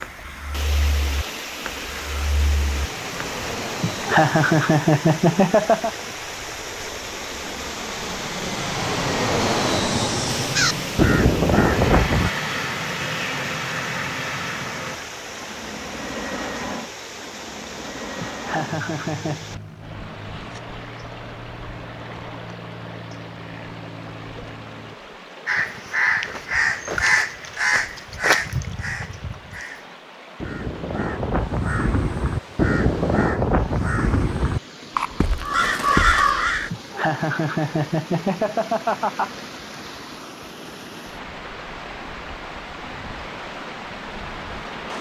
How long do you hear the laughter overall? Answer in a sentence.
The laughter can be heard for 6 seconds in total.